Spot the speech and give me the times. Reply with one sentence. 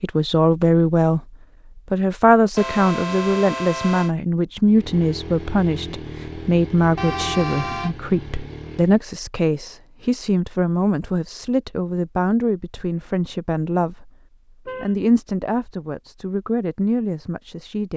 You can hear the speech from 0.0 to 17.9 s.